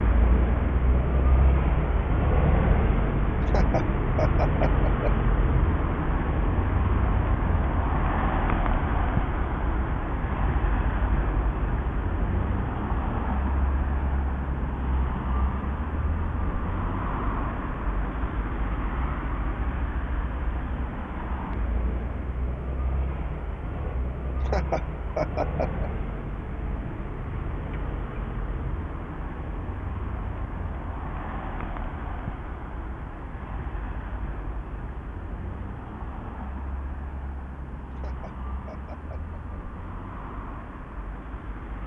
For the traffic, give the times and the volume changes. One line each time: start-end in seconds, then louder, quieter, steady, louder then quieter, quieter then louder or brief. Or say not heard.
0.0-41.8 quieter.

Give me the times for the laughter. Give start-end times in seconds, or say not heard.
3.5-5.1, 24.4-25.9, 38.0-39.4.